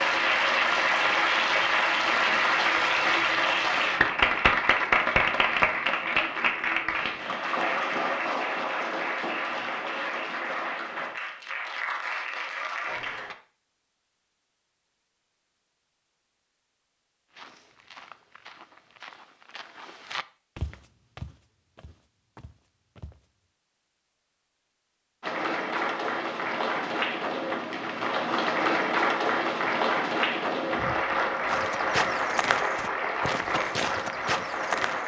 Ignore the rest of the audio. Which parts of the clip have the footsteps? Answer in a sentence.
You can hear the footsteps from 17.3 to 23.2 s and from 31.4 to 35.0 s.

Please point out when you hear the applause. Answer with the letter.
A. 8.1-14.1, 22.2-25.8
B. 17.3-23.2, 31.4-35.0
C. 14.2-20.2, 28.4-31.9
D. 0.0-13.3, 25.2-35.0
D.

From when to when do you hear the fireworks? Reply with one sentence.
The fireworks can't be heard in this clip.